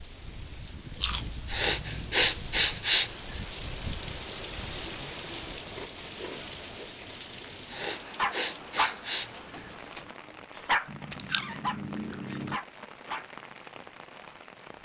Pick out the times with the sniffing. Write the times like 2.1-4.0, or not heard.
1.4-3.1, 7.7-9.7.